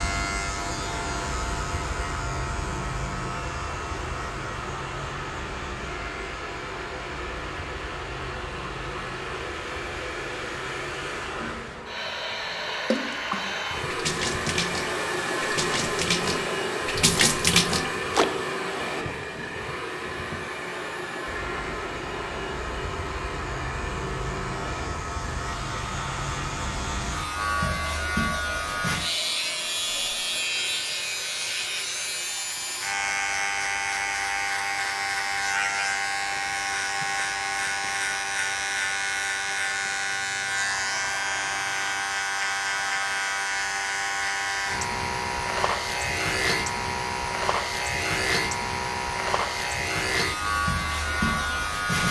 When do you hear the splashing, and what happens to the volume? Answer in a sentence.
You can hear the splashing from 12.9 to 18.2 s, getting louder.